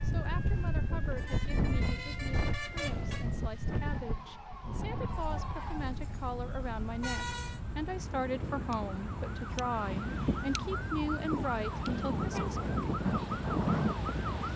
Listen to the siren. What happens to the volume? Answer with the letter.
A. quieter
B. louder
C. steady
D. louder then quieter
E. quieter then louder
B.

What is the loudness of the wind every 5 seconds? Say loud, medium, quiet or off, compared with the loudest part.
loud, medium, loud.